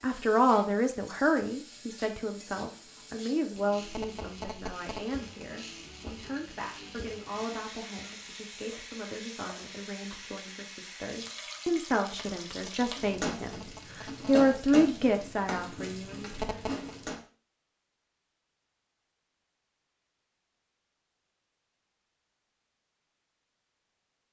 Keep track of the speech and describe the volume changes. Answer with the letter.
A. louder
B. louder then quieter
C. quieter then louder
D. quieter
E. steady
C.